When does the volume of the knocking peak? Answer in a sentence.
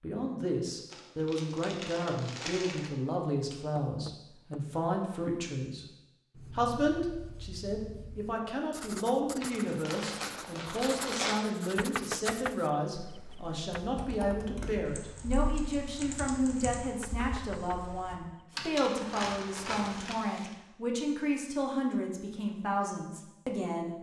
The loudest moment of the knocking is at 12 seconds.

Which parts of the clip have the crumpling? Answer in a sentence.
The crumpling can be heard from 0.9 to 2.9 s, from 9.4 to 11.4 s and from 18.9 to 20.6 s.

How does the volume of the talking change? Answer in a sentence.
The loudness of the talking stays about the same.